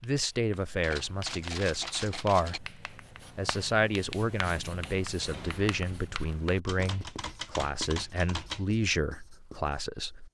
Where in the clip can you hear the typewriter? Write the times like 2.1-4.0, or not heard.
0.8-2.6, 6.7-8.7.